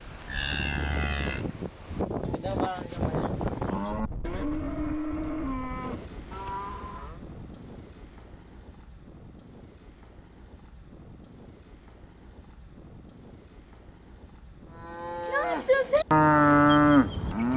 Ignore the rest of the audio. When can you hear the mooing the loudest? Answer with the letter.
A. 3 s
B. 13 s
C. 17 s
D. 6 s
C.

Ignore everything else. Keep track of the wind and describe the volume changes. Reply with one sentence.
The volume of the wind goes down.